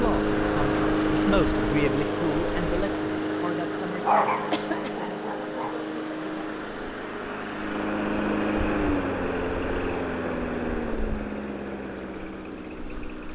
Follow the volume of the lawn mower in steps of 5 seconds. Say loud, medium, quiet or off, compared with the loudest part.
loud, loud, medium.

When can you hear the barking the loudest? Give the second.
4 s.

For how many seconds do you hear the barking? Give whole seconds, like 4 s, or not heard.
2 s.